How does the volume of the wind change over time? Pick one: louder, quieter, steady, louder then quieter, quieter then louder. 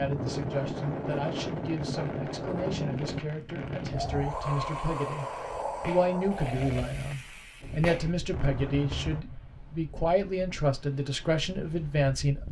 quieter.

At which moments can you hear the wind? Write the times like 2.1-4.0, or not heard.
0.0-12.4.